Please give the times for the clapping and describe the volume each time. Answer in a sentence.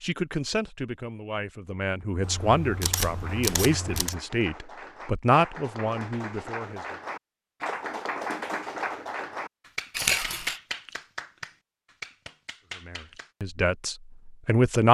You can hear the clapping from 3.0 to 13.3 s, getting louder then quieter.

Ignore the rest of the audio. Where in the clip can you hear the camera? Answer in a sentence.
The camera can be heard from 2.2 to 4.2 s and from 9.9 to 10.6 s.